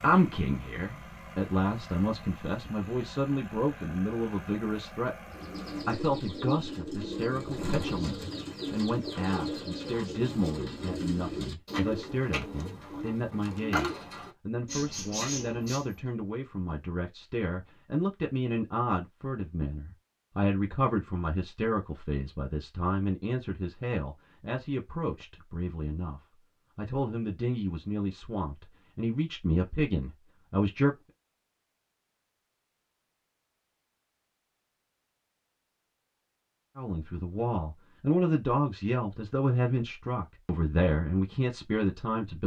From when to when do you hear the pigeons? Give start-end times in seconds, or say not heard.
5.3-16.0.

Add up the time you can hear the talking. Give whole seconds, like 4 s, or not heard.
36 s.